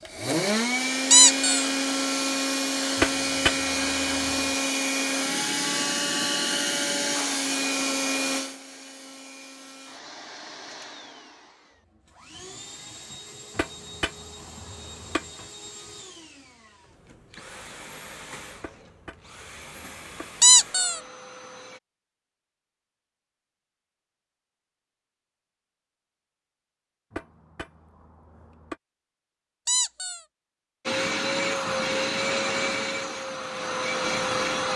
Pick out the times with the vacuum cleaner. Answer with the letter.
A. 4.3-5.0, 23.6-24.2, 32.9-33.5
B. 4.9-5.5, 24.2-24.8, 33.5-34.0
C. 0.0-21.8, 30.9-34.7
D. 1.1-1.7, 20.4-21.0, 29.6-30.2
C.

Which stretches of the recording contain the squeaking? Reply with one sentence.
You can hear the squeaking from 1.1 to 1.7 s, from 20.4 to 21.0 s and from 29.6 to 30.2 s.